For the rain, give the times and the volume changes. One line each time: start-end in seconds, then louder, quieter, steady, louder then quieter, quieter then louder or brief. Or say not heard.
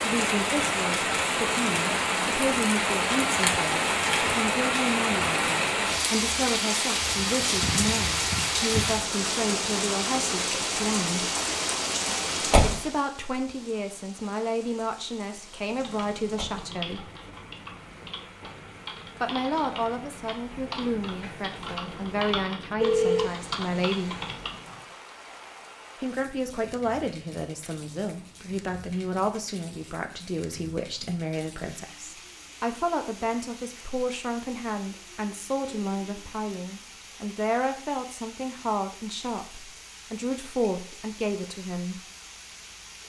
0.0-43.0 quieter.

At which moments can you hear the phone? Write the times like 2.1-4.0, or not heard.
22.8-23.3.